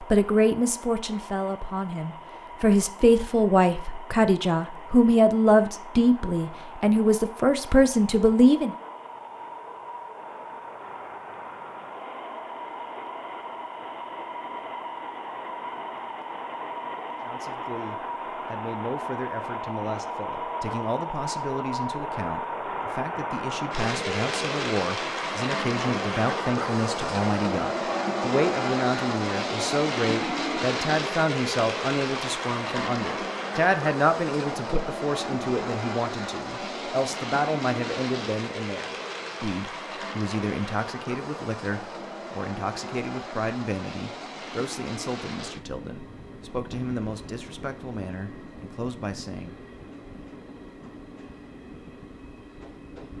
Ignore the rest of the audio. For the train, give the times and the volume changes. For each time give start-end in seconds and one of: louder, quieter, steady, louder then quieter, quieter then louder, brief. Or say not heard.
0.0-53.1 louder then quieter.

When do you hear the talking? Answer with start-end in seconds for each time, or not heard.
0.0-8.8, 17.2-49.5.